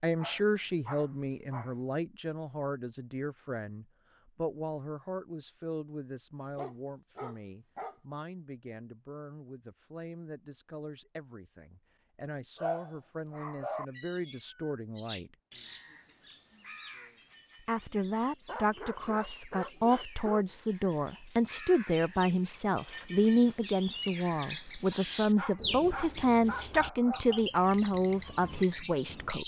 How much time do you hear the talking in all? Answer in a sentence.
You can hear the talking for 27 seconds altogether.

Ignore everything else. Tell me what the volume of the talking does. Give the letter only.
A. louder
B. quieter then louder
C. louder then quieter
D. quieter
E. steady
B.